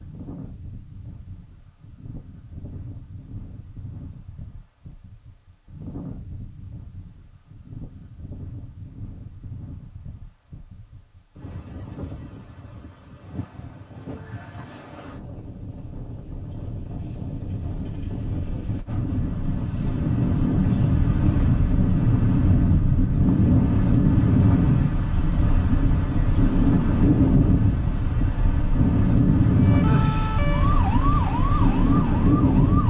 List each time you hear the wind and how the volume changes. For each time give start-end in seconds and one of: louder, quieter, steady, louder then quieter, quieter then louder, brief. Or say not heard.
0.0-32.8 louder.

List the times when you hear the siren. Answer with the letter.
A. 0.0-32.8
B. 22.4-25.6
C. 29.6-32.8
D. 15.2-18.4
C.